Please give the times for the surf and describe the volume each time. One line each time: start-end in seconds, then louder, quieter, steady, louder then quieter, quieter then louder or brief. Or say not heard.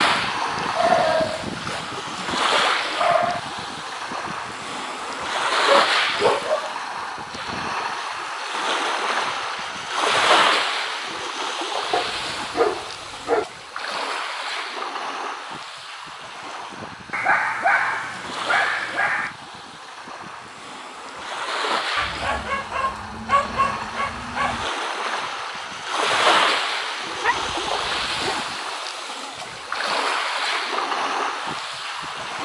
0.0-32.4 quieter then louder.